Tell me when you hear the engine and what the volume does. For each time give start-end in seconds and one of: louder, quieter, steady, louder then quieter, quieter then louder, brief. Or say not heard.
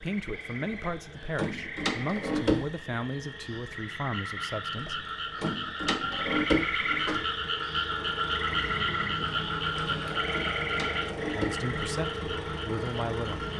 0.0-13.5 louder.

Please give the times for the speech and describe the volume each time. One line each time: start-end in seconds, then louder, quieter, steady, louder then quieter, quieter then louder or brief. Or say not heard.
0.0-5.0 steady
11.3-13.4 brief.